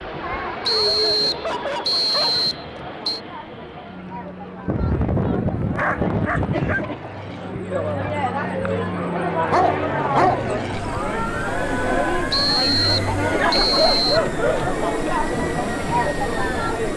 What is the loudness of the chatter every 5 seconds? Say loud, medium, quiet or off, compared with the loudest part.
medium, loud, loud, loud.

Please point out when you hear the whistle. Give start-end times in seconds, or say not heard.
0.7-3.2, 12.3-14.2.